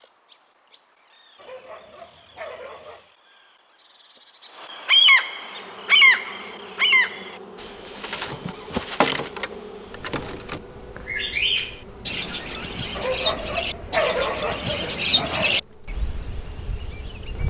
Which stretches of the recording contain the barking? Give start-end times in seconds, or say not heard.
1.4-3.1, 12.9-15.6.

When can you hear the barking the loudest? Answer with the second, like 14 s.
14 s.